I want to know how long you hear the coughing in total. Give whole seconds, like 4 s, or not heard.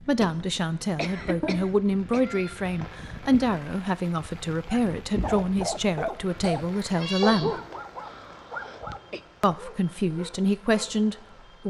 3 s.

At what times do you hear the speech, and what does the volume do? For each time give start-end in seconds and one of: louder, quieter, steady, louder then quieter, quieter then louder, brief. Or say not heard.
0.1-7.5 steady
9.4-11.6 brief.